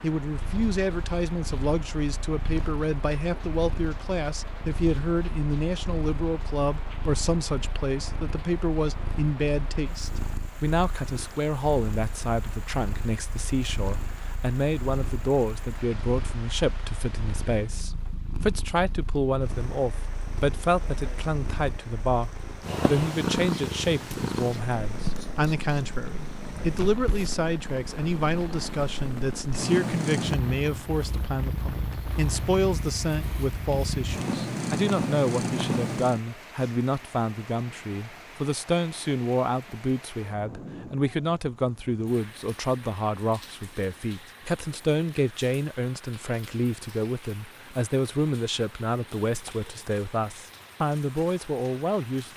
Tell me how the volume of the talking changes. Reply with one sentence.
The volume of the talking stays about the same.